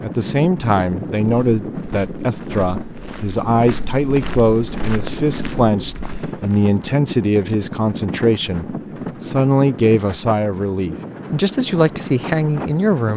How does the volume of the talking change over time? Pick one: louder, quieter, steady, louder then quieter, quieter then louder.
steady.